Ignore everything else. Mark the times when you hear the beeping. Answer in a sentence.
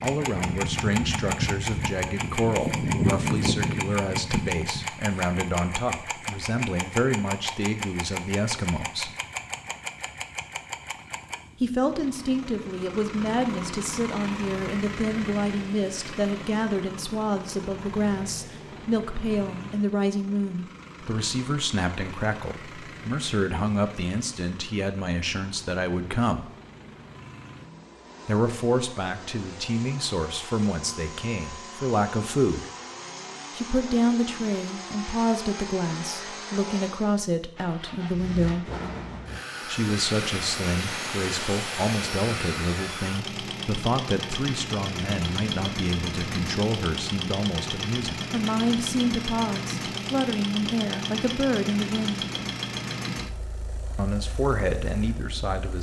You can't hear the beeping here.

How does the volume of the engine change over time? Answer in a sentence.
The volume of the engine goes down, then up.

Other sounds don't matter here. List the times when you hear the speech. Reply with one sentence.
The speech can be heard from 0.0 to 9.1 s, from 11.6 to 26.4 s, from 28.2 to 32.6 s, from 33.5 to 38.6 s, from 39.6 to 52.2 s and from 54.0 to 55.7 s.